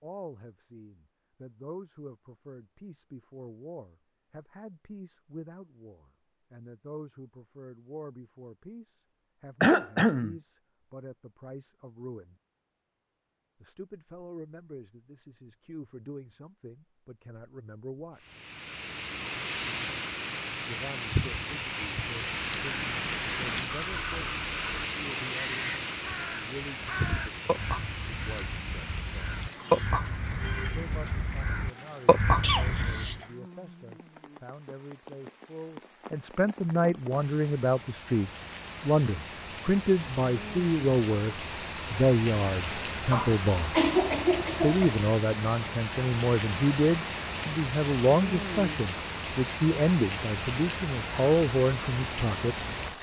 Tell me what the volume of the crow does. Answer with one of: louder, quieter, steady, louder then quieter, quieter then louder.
louder.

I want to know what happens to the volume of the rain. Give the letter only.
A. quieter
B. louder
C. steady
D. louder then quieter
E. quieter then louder
E.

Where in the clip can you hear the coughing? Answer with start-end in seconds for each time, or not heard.
9.6-10.3, 32.4-33.2, 43.1-45.0.